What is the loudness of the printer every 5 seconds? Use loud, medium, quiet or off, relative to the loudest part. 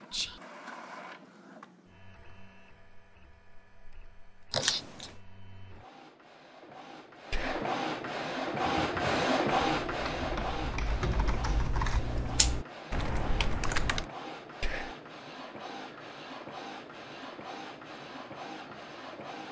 quiet, loud, medium, medium.